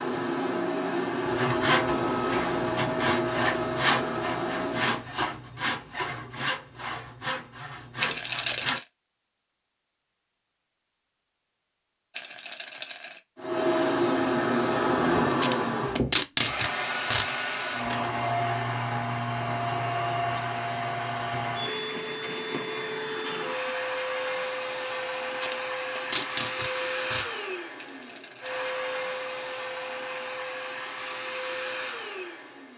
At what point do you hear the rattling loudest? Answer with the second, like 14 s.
8 s.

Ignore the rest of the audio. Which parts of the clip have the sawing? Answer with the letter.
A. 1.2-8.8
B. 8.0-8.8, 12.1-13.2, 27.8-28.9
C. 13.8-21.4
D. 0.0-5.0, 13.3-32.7
A.